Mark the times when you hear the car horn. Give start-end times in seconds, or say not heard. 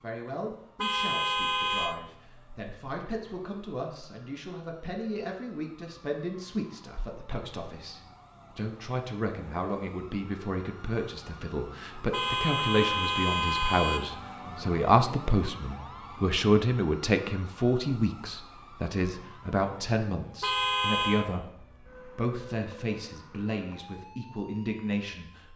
0.8-1.9, 12.1-14.0, 20.4-21.2.